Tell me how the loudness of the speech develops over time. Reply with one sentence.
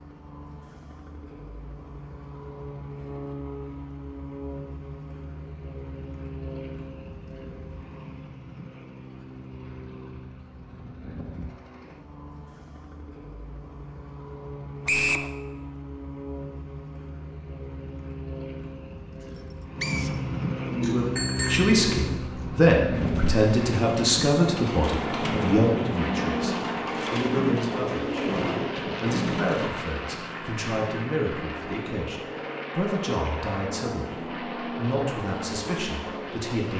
The volume of the speech goes down.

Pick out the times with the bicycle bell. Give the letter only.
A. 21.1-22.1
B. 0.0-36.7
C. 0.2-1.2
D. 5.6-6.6
A.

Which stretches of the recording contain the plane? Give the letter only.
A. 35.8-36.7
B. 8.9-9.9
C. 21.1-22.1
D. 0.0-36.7
D.